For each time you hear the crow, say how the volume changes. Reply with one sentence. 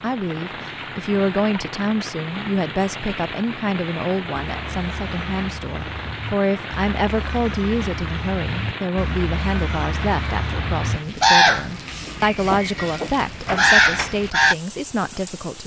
You can hear the crow from 4.5 to 14.6 s, getting louder.